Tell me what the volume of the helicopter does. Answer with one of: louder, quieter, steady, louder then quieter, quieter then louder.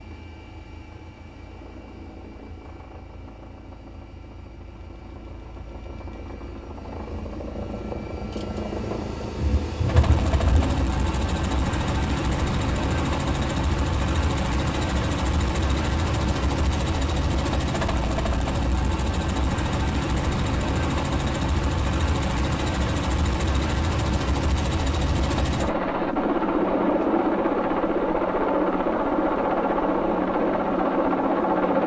louder.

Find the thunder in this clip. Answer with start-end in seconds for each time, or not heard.
9.3-10.8.